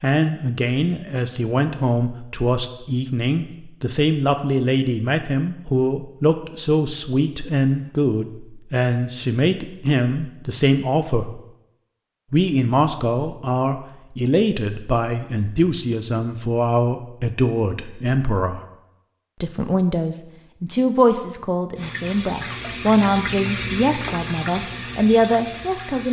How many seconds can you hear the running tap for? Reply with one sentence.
You can hear the running tap for 4 seconds altogether.